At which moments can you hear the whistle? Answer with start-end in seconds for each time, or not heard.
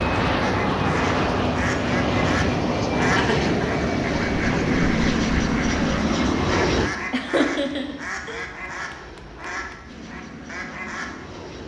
not heard.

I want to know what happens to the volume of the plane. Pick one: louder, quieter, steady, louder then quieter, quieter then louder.
quieter.